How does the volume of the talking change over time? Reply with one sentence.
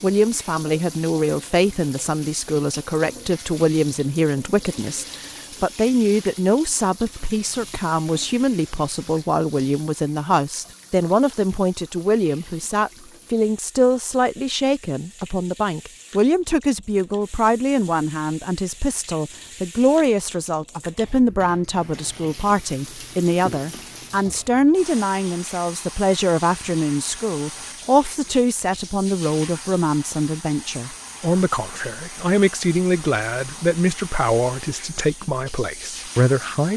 The loudness of the talking stays about the same.